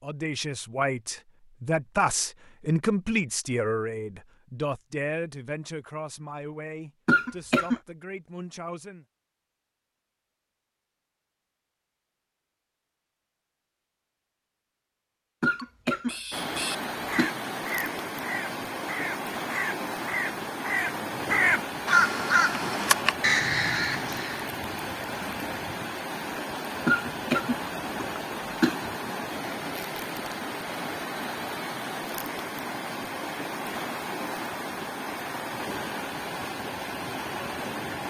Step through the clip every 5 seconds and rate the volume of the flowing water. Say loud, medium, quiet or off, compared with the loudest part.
off, off, off, loud, loud, loud, loud, loud.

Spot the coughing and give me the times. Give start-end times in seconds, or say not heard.
7.0-7.8, 15.4-17.3, 26.9-28.8.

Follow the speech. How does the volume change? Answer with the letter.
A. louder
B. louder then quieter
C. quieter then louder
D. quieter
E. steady
D.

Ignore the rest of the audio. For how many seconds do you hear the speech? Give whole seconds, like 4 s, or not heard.
9 s.